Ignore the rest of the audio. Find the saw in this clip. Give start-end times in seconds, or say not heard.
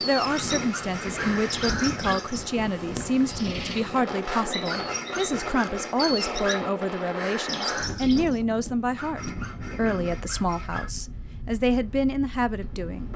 0.2-2.2, 4.7-6.6, 8.9-10.9.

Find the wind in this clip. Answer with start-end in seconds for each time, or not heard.
0.0-13.1.